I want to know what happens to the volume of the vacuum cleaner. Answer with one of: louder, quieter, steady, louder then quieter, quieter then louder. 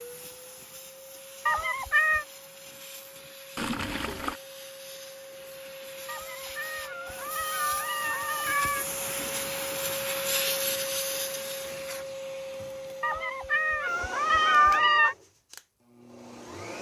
louder then quieter.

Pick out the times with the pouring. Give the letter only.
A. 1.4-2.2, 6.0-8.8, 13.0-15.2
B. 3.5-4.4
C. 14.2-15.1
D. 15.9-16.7
B.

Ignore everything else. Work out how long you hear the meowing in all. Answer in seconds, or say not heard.
6 s.